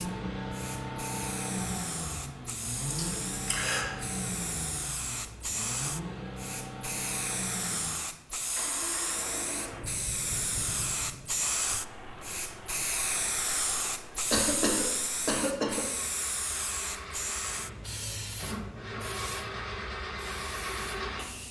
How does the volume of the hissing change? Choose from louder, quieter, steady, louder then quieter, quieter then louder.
louder then quieter.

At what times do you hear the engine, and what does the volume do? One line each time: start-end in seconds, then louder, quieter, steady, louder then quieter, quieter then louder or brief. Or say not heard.
0.0-21.4 quieter then louder.